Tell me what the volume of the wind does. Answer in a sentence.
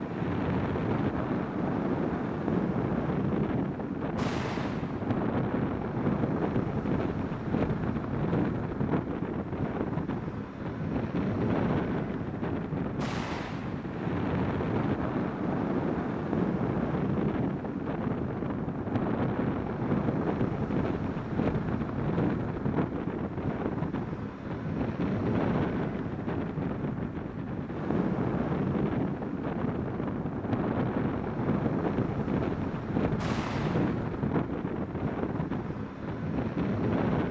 The volume of the wind stays about the same.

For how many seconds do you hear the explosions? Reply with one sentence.
The explosions can be heard for 3 seconds in total.